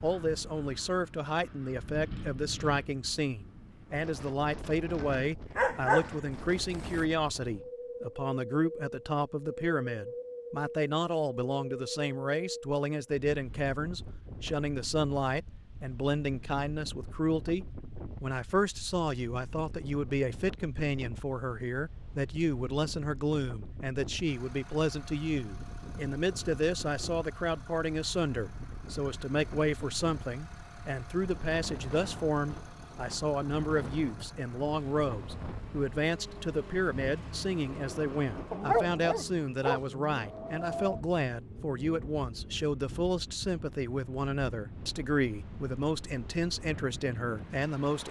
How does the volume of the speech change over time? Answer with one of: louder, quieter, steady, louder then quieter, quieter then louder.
steady.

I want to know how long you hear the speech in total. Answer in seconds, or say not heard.
48 s.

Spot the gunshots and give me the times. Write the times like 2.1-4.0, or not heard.
not heard.